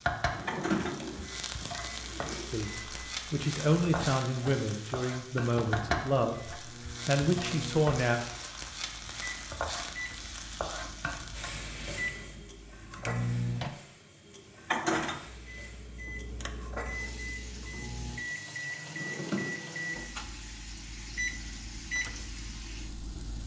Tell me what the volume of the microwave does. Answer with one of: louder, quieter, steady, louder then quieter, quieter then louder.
louder.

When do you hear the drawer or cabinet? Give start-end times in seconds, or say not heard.
0.2-2.5, 18.9-19.5.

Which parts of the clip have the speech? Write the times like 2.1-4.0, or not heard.
2.5-8.2.